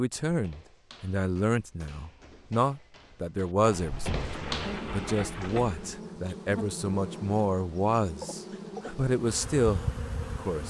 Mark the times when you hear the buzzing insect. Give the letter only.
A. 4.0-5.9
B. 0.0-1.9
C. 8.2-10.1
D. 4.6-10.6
D.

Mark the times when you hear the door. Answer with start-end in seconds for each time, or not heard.
4.0-5.9.